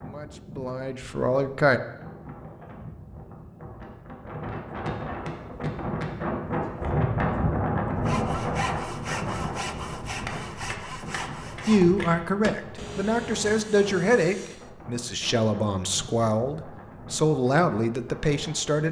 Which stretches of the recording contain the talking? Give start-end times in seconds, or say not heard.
0.0-1.8, 11.7-18.8.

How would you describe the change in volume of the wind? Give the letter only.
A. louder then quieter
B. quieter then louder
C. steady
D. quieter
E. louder
A.